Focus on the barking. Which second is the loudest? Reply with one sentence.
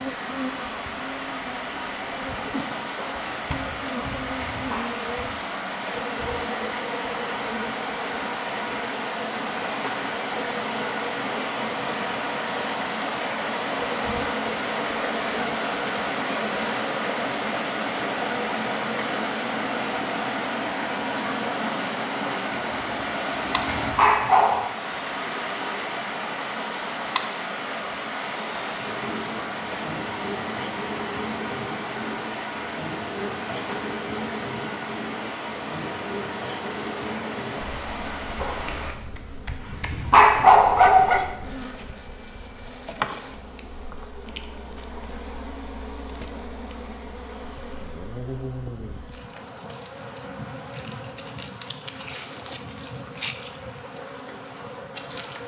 The volume of the barking peaks at 40 seconds.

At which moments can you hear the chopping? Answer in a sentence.
You can't hear the chopping here.